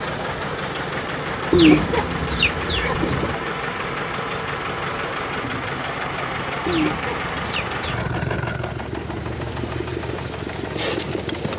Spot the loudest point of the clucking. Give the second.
2 s.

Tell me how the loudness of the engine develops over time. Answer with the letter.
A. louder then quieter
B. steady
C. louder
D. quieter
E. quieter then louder
B.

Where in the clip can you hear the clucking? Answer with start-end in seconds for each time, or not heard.
1.5-3.4, 6.7-8.5.